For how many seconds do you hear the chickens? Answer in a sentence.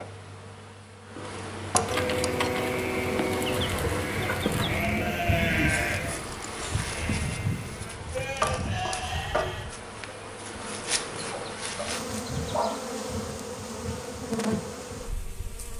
You can hear the chickens for 5 seconds altogether.